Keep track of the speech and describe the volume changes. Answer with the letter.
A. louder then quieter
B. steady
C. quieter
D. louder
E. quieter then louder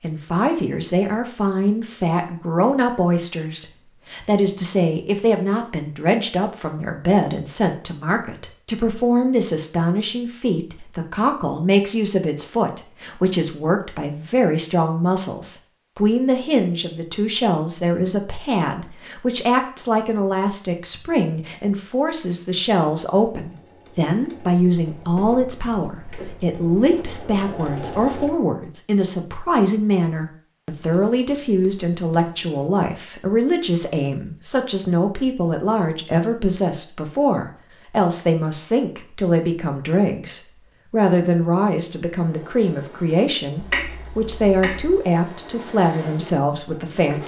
B.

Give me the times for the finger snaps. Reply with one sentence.
You can hear the finger snaps from 43.5 to 45.0 s.